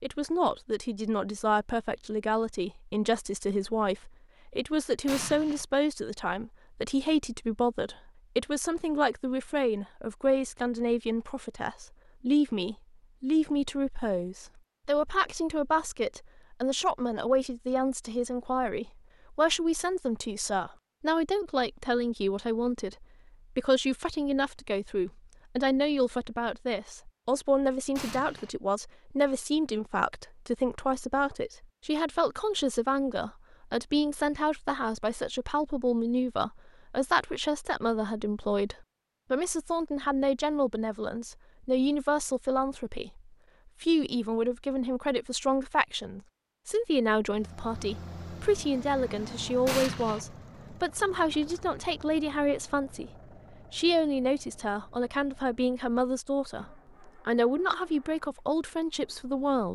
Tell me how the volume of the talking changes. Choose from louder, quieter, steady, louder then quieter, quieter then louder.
steady.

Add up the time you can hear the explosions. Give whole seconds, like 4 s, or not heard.
2 s.